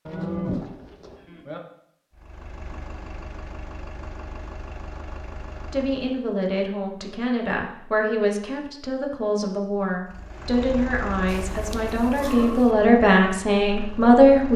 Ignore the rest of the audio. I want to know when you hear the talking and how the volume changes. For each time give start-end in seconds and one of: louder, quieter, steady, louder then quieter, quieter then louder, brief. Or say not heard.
5.7-14.5 louder.